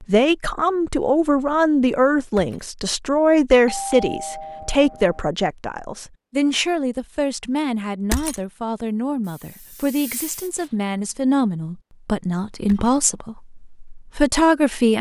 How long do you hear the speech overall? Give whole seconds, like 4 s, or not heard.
15 s.